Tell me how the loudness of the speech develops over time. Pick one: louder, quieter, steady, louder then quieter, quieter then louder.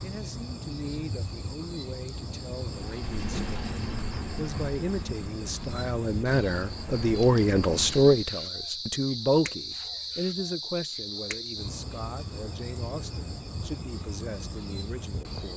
louder then quieter.